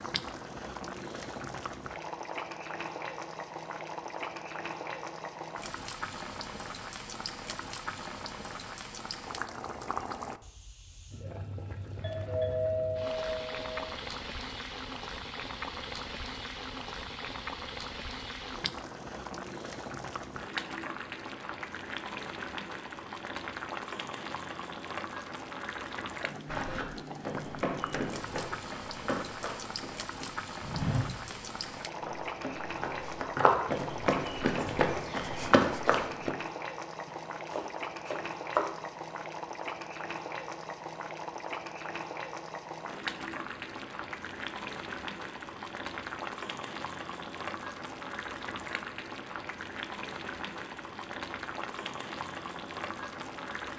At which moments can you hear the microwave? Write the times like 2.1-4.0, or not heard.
not heard.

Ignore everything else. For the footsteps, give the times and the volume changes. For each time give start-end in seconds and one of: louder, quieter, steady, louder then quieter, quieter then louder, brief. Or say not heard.
26.4-36.3 louder.